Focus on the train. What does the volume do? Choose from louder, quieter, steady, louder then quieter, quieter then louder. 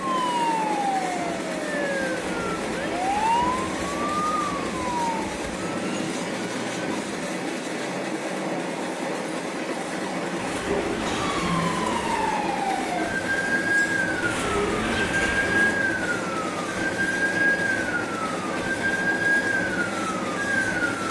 steady.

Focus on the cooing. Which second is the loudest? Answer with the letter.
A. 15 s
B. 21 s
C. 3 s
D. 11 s
A.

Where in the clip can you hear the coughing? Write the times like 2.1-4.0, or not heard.
11.0-11.8.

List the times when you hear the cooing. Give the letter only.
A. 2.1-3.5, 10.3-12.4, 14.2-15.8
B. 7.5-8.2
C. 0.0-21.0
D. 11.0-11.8
A.